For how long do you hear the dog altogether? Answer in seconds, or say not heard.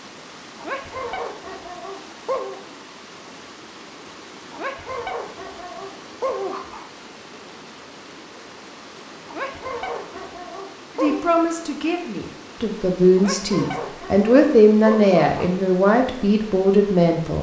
9 s.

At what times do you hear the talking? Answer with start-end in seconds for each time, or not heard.
11.0-17.3.